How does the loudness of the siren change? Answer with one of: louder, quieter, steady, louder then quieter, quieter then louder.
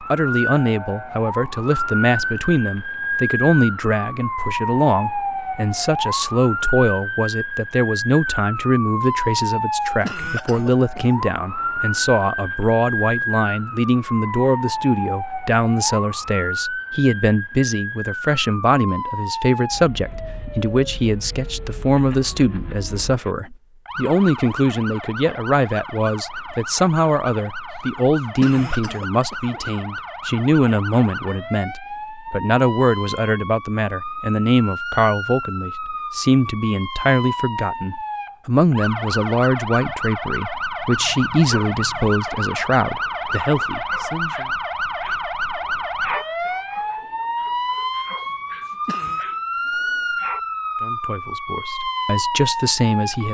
quieter then louder.